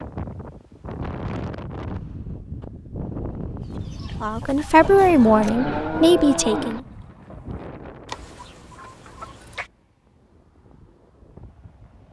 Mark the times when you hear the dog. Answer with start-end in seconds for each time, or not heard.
not heard.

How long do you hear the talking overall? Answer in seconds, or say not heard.
3 s.